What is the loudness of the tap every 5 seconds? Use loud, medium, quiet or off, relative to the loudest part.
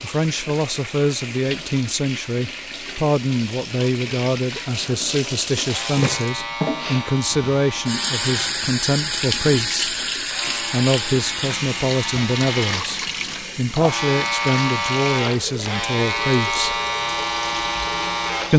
medium, loud, loud, medium.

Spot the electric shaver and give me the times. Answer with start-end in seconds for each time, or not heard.
5.6-18.5.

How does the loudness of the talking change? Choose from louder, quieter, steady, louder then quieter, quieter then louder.
steady.